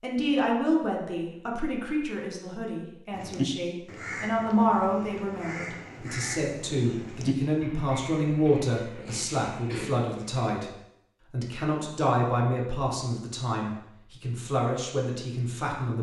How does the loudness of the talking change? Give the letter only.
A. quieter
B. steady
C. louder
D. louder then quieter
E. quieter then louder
B.